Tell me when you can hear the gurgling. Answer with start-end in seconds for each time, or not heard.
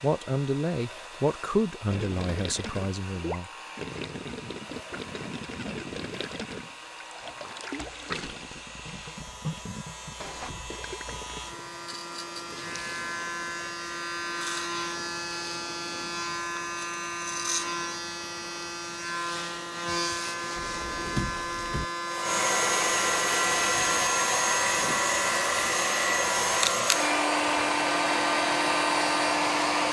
1.9-13.5.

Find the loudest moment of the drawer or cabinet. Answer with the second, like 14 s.
21 s.